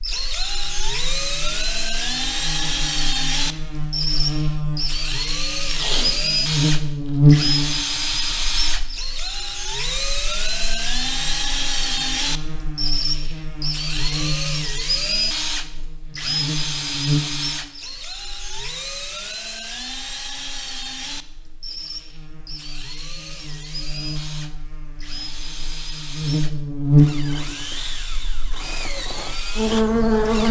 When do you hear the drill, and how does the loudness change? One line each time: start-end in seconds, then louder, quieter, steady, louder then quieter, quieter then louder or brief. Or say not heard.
0.0-30.4 quieter.